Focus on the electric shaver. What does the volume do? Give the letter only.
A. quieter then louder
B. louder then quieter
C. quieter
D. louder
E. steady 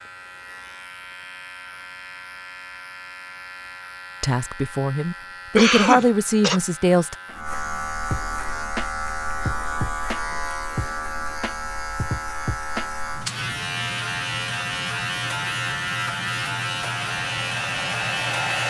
D.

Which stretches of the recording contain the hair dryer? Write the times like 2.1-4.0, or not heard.
17.1-18.6.